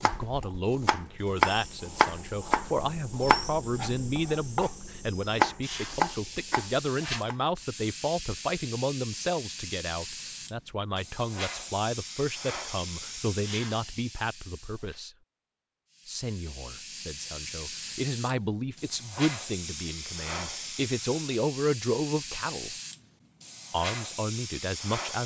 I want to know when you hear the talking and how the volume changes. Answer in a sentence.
You can hear the talking from 0.0 to 15.1 s, at a steady volume; from 16.1 to 22.8 s, getting louder; and briefly from 23.7 to 25.2 s.